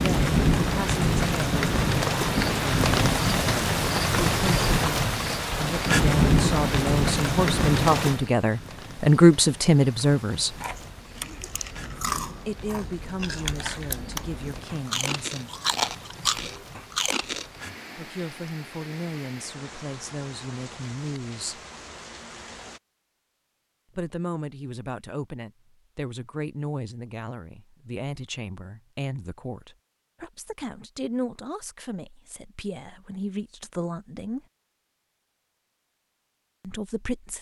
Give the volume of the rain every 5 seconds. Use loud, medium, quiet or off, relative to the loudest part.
loud, loud, quiet, quiet, quiet, off, off, off.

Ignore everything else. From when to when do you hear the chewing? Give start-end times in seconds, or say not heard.
10.6-17.4.